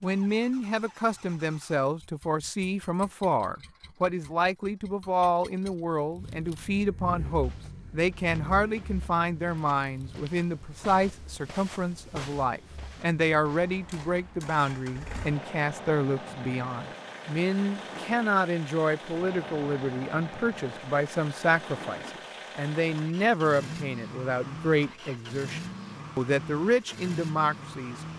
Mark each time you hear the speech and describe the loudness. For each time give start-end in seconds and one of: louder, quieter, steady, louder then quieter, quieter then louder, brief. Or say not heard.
0.0-28.0 steady.